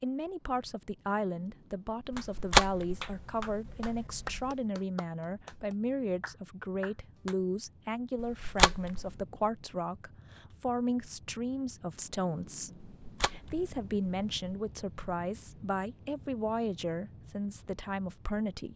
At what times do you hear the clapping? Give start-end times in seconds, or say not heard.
2.1-7.3.